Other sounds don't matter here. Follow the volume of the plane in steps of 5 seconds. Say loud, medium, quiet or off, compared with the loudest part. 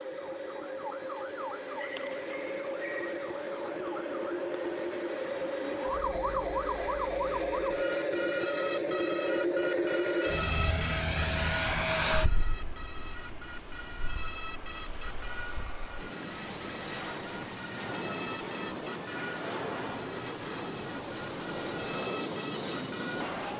medium, loud, loud, medium, medium.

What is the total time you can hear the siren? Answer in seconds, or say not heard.
23 s.